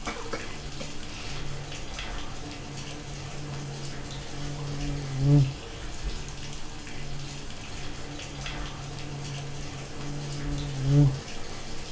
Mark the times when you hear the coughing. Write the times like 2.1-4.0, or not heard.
0.1-1.4.